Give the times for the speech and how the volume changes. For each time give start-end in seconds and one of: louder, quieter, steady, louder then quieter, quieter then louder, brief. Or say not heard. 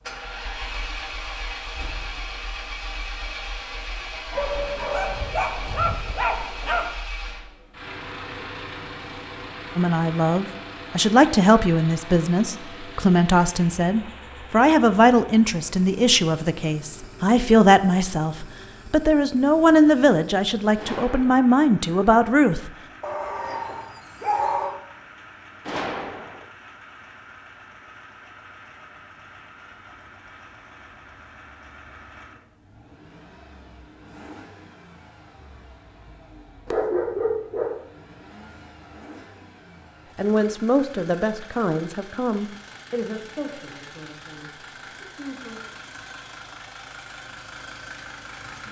9.8-22.7 steady
40.1-45.6 quieter.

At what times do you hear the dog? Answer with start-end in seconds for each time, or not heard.
4.3-7.0, 23.0-24.8, 36.6-37.8.